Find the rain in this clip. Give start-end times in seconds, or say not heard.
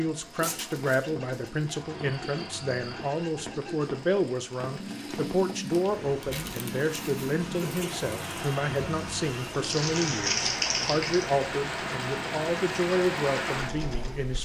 0.0-14.4.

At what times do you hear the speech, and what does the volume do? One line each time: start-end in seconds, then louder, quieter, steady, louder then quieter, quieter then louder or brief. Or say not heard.
0.0-14.4 steady.